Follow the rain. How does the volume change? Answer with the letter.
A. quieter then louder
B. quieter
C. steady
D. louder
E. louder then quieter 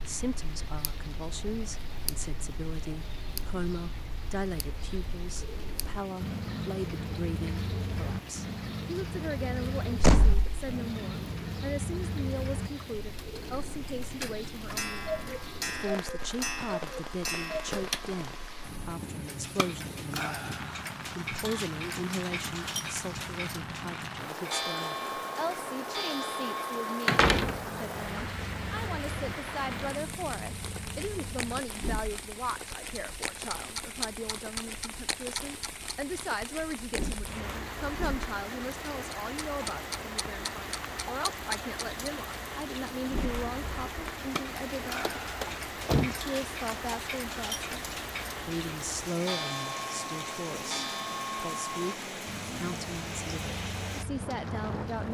D.